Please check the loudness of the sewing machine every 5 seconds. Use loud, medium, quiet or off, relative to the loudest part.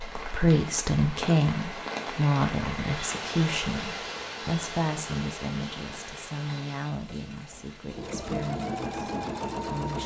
off, loud.